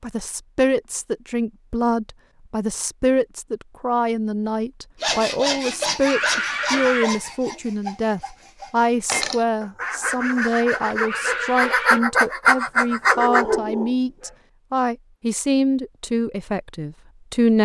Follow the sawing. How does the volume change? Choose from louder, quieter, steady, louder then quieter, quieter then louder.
quieter then louder.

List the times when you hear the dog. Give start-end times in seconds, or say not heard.
12.7-14.3.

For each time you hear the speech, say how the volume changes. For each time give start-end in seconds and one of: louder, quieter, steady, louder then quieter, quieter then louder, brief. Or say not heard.
0.0-17.5 steady.